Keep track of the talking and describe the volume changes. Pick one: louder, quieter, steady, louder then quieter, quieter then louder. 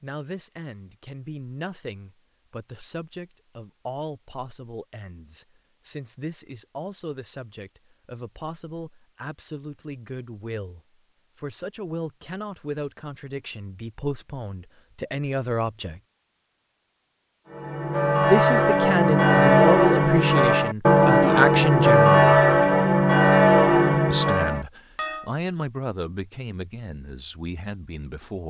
louder then quieter.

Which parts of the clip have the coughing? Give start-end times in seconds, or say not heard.
not heard.